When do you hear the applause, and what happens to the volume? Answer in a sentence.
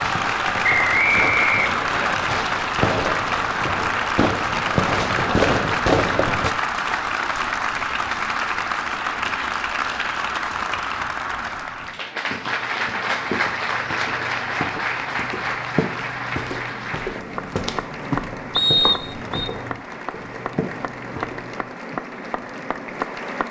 The applause can be heard from 0.0 to 23.4 s, getting quieter.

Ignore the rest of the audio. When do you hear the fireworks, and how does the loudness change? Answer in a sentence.
The fireworks can be heard from 0.0 to 6.5 s, getting louder.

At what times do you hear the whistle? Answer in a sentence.
You can hear the whistle from 0.6 to 2.1 s and from 18.5 to 19.5 s.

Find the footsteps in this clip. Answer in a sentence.
You can hear the footsteps from 12.2 to 21.7 s.